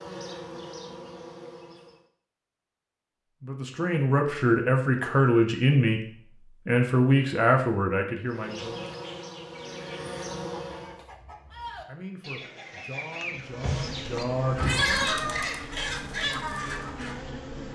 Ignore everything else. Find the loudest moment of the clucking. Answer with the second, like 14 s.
15 s.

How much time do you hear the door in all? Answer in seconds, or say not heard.
2 s.